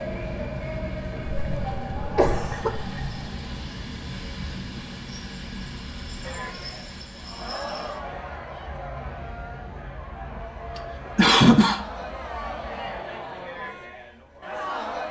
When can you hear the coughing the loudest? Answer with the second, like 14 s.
11 s.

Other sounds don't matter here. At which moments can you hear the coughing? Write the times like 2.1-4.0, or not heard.
1.3-3.2, 10.8-11.8.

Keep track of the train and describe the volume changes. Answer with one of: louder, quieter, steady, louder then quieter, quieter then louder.
quieter.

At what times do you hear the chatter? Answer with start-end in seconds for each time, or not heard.
6.2-15.0.